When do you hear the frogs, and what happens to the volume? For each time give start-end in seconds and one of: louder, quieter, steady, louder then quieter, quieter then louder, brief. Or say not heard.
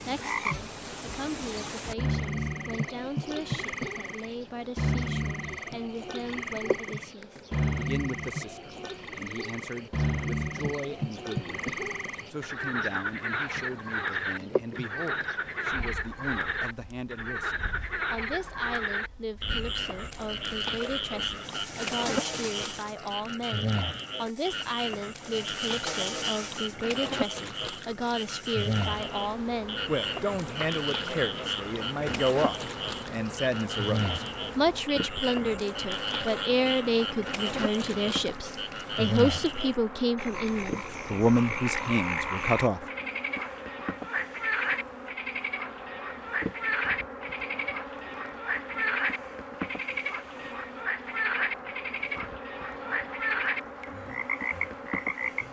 0.0-55.4 steady.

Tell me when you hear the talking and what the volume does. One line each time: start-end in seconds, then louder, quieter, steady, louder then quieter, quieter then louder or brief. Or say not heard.
0.0-42.9 louder.